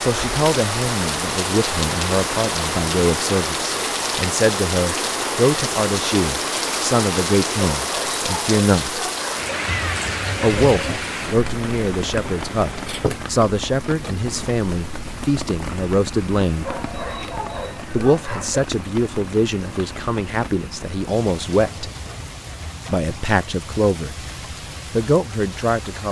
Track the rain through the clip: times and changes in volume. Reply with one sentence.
The rain can be heard from 0.0 to 26.0 s, getting quieter.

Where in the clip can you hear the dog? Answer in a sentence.
The dog can be heard from 7.5 to 9.5 s and from 16.6 to 18.6 s.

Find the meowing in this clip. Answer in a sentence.
The meowing can be heard from 9.7 to 11.0 s.